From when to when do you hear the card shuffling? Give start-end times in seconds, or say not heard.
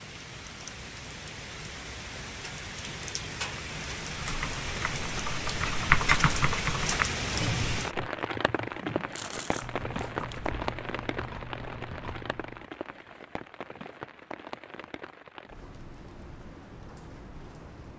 8.6-10.6.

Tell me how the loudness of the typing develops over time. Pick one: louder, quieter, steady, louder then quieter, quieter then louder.
louder then quieter.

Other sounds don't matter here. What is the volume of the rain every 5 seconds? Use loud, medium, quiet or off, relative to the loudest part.
medium, loud, medium, quiet.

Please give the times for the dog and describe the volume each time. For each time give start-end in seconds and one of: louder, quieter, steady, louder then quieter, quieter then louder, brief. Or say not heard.
not heard.